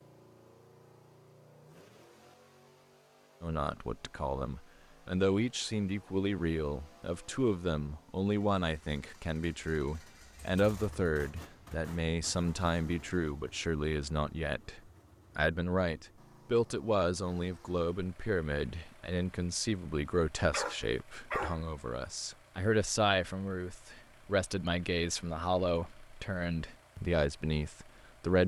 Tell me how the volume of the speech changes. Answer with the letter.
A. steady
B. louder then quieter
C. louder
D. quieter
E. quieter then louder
A.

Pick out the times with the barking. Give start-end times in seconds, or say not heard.
20.5-21.6.